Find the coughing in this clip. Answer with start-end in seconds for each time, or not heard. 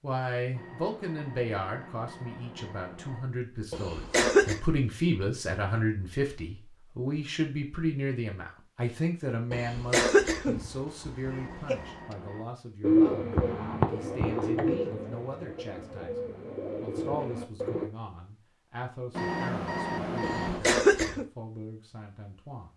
3.7-4.6, 9.5-11.8, 20.2-21.2.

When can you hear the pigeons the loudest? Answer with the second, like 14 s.
13 s.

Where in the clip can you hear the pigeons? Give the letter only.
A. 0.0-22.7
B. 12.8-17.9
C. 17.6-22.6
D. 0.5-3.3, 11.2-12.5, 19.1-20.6
B.